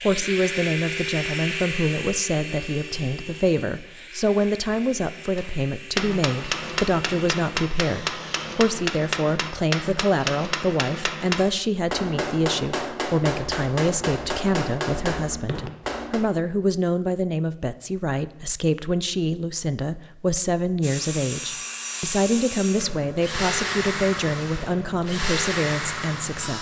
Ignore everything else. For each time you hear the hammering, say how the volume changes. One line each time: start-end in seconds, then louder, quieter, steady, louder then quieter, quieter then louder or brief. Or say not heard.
5.3-16.2 steady.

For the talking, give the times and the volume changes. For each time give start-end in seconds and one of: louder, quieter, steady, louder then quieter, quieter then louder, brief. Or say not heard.
0.0-26.5 steady.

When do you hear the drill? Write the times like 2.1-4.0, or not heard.
0.0-8.6, 20.8-26.5.